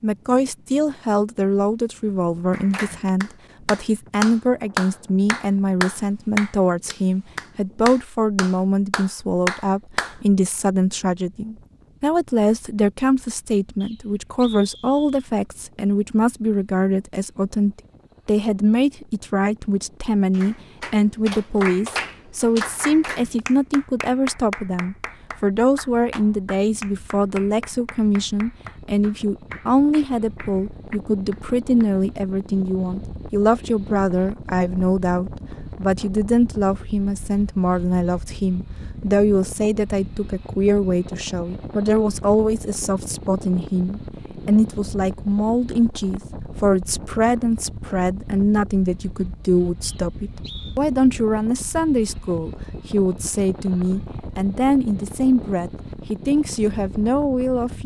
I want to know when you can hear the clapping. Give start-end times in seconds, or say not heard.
2.5-10.2, 20.4-31.9.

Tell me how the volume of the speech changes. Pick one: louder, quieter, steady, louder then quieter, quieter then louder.
steady.